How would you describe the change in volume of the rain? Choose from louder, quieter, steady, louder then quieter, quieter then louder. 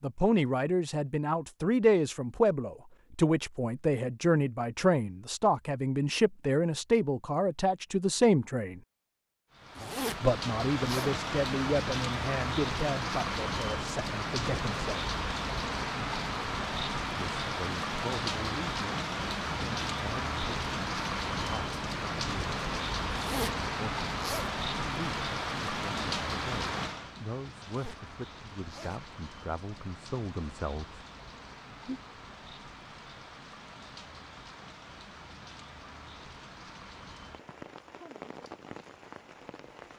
quieter.